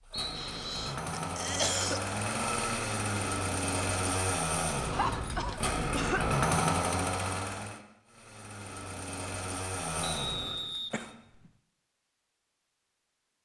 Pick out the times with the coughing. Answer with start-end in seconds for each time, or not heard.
0.3-2.1, 4.9-6.3, 10.9-11.5.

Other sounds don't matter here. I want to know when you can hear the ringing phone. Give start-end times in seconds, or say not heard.
not heard.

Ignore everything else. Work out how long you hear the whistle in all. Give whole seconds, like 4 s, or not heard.
2 s.